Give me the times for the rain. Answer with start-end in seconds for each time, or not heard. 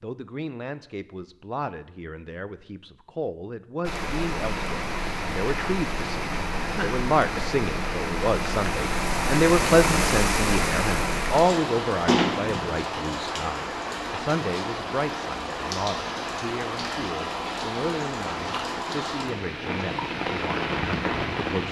3.8-21.6.